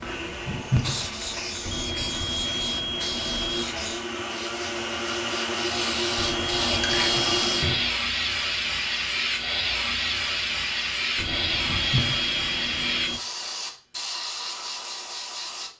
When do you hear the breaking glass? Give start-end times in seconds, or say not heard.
not heard.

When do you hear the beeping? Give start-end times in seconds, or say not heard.
1.6-3.6, 6.2-8.0, 11.2-13.2.